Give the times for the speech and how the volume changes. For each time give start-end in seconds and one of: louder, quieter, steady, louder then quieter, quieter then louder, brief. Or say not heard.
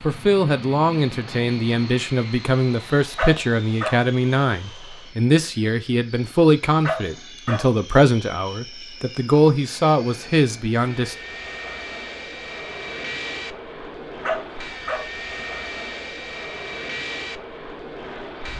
0.0-11.2 steady.